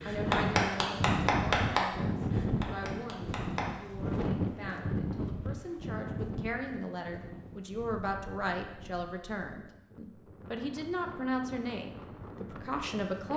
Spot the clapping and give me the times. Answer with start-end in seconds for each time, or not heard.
0.0-3.8.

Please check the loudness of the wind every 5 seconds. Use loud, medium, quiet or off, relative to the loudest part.
loud, medium, quiet.